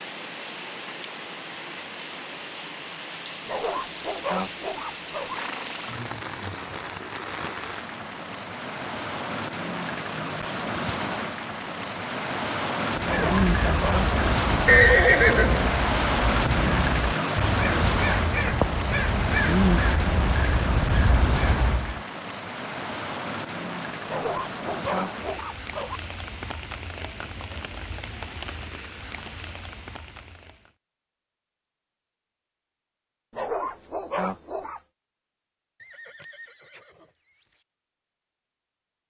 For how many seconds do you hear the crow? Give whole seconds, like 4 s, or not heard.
9 s.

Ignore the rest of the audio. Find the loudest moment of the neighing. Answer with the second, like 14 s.
15 s.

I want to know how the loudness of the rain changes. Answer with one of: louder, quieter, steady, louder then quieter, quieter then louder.
louder then quieter.